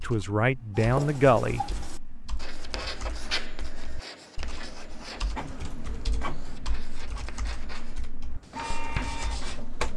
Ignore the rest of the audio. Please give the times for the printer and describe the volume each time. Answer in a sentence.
You can hear the printer from 5.3 to 9.9 s, getting quieter then louder.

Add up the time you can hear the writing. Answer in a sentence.
The writing can be heard for 9 seconds in total.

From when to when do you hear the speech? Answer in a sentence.
The speech can be heard from 0.0 to 1.6 s.